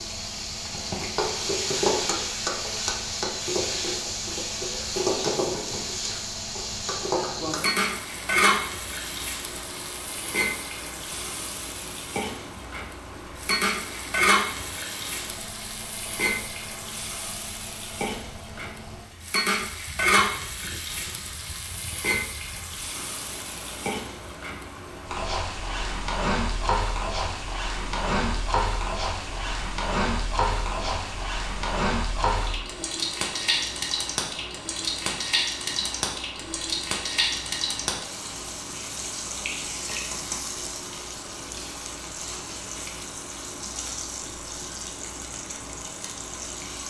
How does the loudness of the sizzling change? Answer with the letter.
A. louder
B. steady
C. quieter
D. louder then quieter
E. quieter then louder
C.